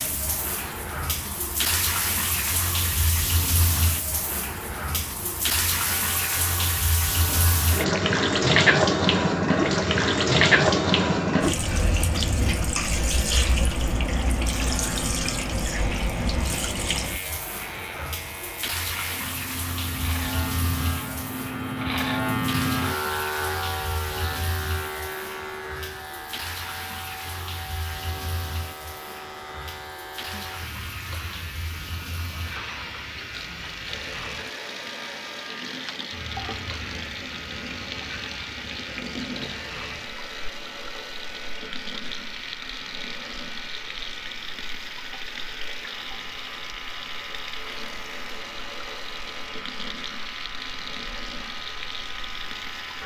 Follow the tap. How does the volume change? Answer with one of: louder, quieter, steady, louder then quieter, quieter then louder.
quieter.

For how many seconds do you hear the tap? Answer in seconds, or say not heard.
53 s.